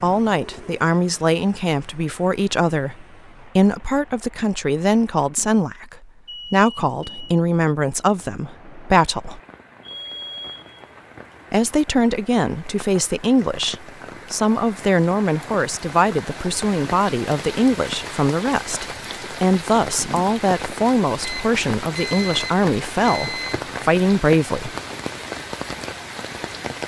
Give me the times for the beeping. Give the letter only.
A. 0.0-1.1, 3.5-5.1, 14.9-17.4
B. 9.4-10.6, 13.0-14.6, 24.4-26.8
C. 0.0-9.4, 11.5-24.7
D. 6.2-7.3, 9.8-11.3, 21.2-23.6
D.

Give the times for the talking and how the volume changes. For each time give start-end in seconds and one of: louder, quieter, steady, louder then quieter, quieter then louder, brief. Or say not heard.
0.0-9.4 steady
11.5-24.7 steady.